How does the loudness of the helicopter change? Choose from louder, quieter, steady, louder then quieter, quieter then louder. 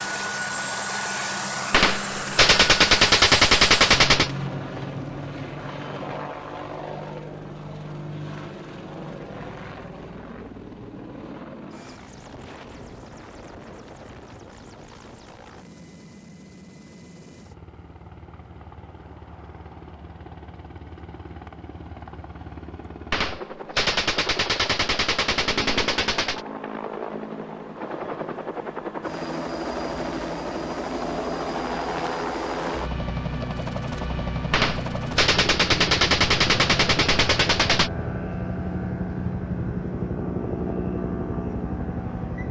quieter then louder.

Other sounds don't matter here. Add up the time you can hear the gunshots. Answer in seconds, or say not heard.
9 s.